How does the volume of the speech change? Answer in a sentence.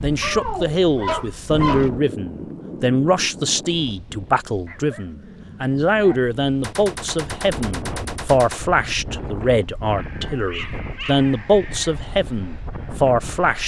The loudness of the speech stays about the same.